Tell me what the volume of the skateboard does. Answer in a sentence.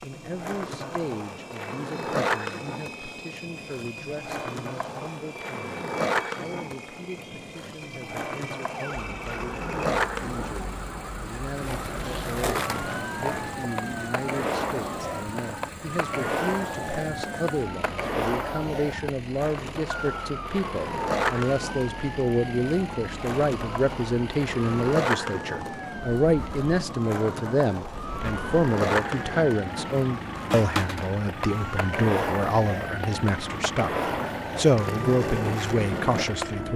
The loudness of the skateboard stays about the same.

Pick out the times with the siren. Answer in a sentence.
The siren can be heard from 8.7 to 36.7 s.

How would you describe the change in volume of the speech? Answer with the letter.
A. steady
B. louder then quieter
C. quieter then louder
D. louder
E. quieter
D.